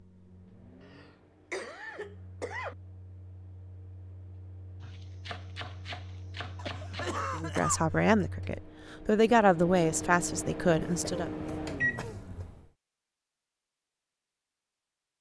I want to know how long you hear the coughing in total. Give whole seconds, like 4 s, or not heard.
5 s.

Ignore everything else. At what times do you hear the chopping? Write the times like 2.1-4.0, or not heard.
4.8-7.2.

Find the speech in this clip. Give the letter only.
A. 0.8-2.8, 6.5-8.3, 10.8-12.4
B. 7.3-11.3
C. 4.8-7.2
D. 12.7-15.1
B.